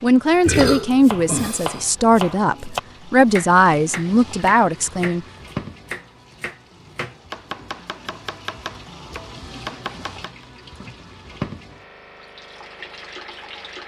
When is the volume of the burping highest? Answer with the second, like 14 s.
1 s.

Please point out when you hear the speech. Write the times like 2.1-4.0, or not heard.
0.0-5.2.